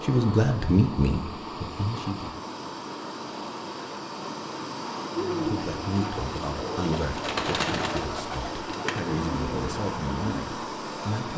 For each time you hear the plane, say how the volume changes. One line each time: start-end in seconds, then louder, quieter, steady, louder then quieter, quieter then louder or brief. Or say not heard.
0.0-11.3 steady.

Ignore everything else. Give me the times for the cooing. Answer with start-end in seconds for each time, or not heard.
5.2-10.4.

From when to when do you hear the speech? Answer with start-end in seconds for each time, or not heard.
0.0-2.4, 5.2-11.3.